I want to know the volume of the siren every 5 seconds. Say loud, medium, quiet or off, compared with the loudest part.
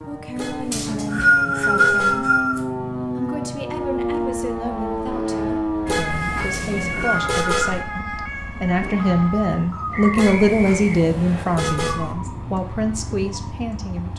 loud, loud, medium.